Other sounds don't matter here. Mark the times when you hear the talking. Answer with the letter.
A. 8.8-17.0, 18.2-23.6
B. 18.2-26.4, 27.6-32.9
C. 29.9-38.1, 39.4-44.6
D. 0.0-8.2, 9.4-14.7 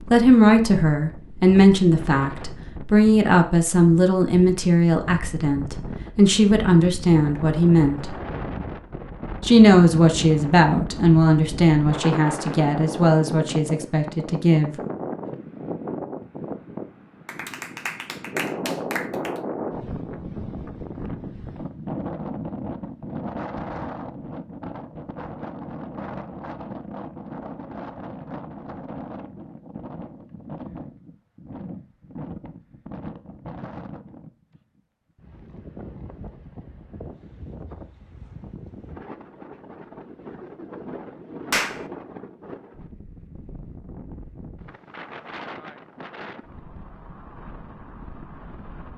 D.